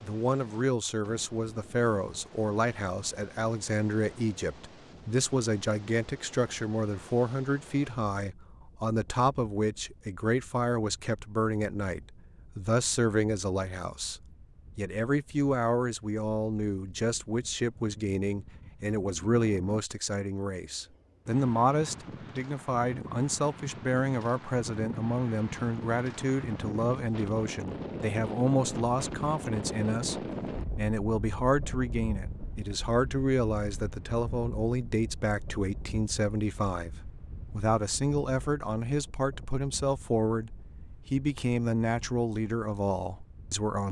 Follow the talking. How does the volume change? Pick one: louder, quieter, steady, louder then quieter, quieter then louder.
steady.